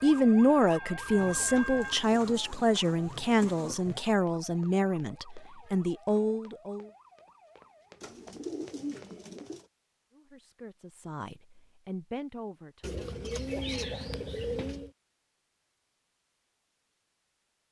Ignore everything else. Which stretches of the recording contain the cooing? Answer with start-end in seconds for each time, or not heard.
1.1-4.0, 8.0-9.7, 12.8-14.9.